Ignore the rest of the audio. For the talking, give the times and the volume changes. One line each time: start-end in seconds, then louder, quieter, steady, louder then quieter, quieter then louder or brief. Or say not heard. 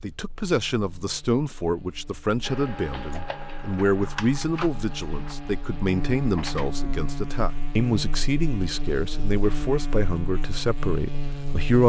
0.0-11.8 steady.